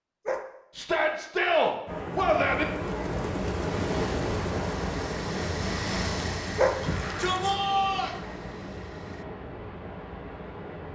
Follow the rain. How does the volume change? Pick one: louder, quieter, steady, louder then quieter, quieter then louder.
quieter.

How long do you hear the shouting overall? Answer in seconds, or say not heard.
3 s.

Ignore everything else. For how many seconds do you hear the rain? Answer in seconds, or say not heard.
9 s.